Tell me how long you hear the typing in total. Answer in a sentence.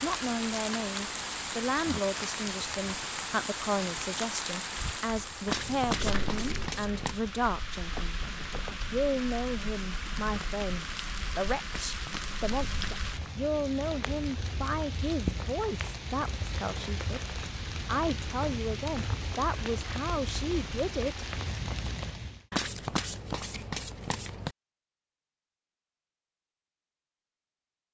The typing can't be heard in this clip.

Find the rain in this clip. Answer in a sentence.
The rain can be heard from 0.0 to 22.4 s.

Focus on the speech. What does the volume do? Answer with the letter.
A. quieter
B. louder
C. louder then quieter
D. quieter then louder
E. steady
E.